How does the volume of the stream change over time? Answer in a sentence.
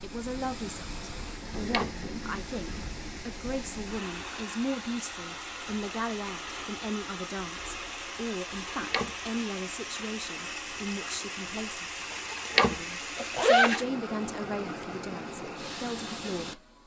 The volume of the stream stays about the same.